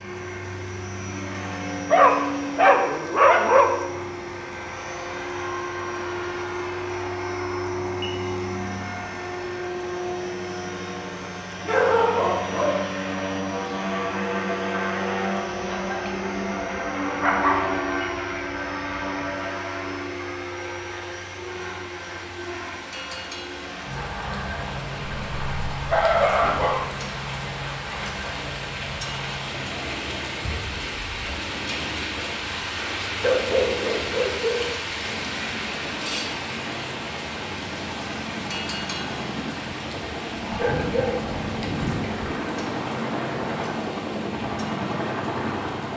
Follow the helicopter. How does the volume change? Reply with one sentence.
The loudness of the helicopter goes down, then up.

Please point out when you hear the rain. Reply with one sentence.
You can hear the rain from 0.0 to 45.9 s.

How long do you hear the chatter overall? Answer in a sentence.
The chatter can't be heard in this clip.